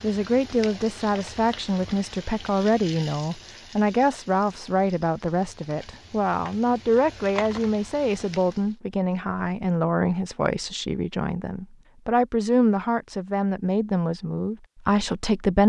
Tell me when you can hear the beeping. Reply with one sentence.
You can't hear the beeping here.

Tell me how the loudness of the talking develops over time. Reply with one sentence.
The volume of the talking stays about the same.